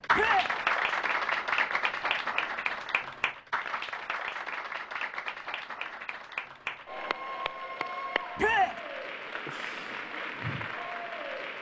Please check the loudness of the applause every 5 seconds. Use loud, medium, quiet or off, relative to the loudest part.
loud, medium, medium.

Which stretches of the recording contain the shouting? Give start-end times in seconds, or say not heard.
0.1-0.5, 8.3-8.8.